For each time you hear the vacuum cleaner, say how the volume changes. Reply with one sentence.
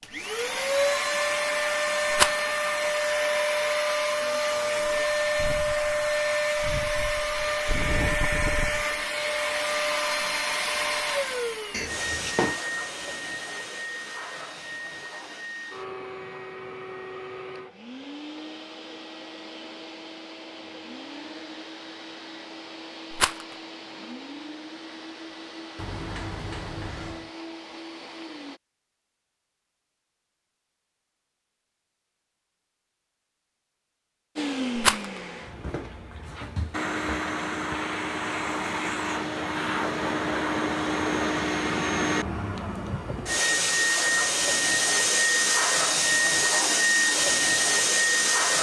You can hear the vacuum cleaner from 0.0 to 28.6 s, getting quieter; and from 34.4 to 48.5 s, getting louder.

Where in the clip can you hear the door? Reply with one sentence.
You can hear the door from 11.7 to 12.6 s and from 25.8 to 27.3 s.